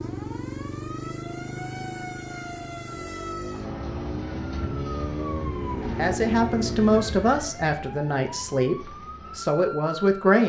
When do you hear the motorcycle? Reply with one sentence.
The motorcycle can be heard from 0.0 to 7.5 s.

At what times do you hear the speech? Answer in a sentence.
You can hear the speech from 6.0 to 10.4 s.